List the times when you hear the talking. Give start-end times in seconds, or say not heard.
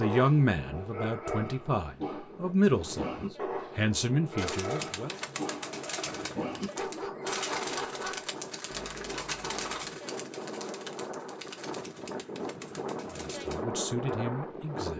0.0-5.2, 13.1-14.9.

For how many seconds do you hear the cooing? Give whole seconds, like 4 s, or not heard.
9 s.